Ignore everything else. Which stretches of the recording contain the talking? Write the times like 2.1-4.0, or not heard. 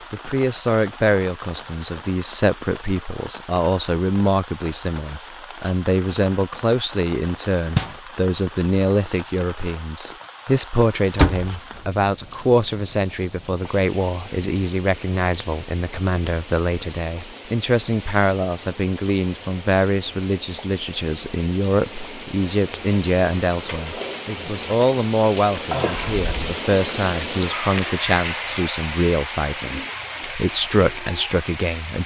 0.1-32.0.